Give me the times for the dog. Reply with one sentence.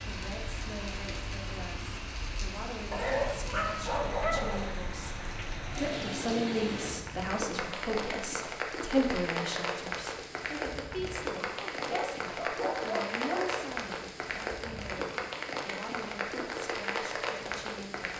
You can hear the dog from 2.9 to 4.8 s and from 11.8 to 13.7 s.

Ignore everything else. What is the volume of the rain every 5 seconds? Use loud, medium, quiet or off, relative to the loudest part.
medium, loud, loud, loud.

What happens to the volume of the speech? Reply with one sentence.
The loudness of the speech goes up, then down.